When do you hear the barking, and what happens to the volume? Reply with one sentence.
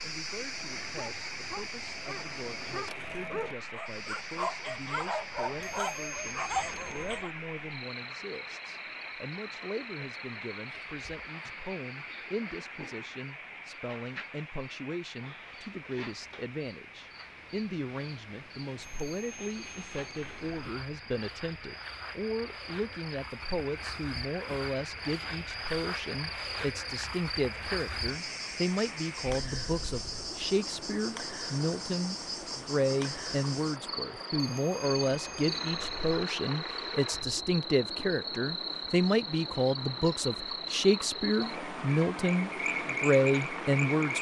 You can hear the barking from 0.3 to 7.3 s, getting louder.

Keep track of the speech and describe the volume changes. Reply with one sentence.
The volume of the speech goes up.